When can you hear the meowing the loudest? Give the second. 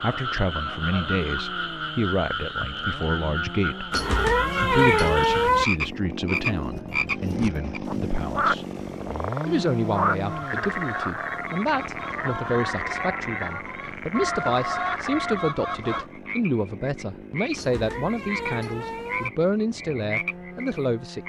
5 s.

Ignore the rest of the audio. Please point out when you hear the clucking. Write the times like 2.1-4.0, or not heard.
10.2-16.1.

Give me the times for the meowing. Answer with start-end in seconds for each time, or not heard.
3.9-5.7, 17.6-19.3.